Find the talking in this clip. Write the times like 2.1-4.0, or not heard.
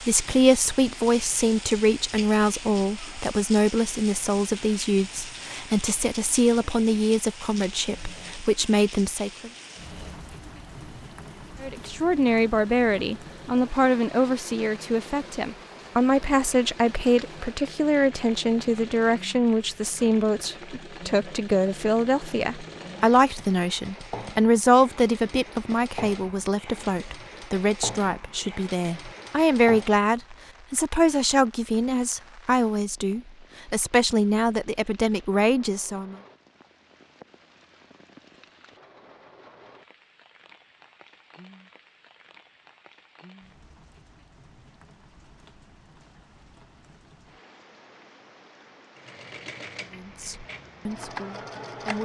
0.0-9.5, 11.6-36.1, 50.0-51.9.